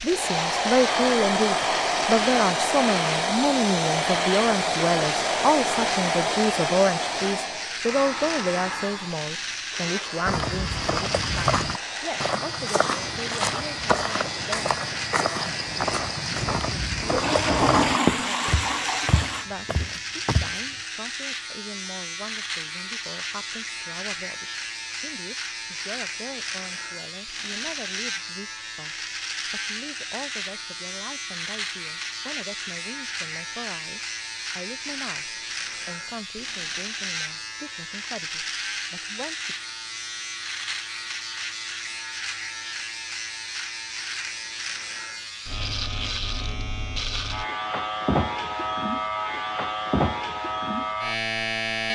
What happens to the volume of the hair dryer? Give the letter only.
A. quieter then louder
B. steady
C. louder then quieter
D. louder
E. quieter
E.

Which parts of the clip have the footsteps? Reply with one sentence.
You can hear the footsteps from 10.2 to 20.6 s.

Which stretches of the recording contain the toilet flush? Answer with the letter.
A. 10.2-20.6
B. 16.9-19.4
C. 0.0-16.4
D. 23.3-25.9
B.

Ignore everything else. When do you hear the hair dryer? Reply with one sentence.
The hair dryer can be heard from 0.0 to 16.4 s.